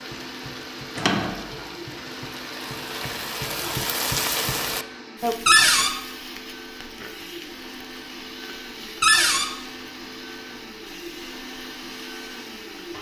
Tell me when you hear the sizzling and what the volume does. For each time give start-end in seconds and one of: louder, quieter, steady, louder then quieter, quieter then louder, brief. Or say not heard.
0.0-12.9 louder then quieter.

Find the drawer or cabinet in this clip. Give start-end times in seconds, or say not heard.
0.9-1.4, 5.5-6.0, 9.0-9.5.